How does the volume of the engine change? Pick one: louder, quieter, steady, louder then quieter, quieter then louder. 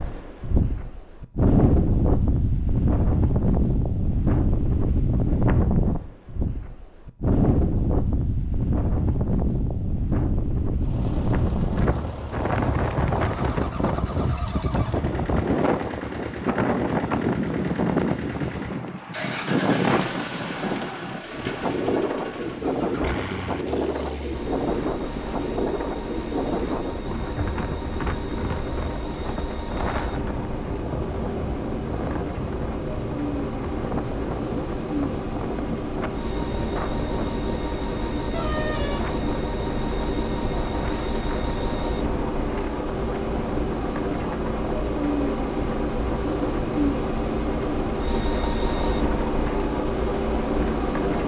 louder.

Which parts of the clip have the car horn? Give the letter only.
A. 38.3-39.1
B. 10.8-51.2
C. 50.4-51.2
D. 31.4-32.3
A.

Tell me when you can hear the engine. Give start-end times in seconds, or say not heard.
10.8-51.2.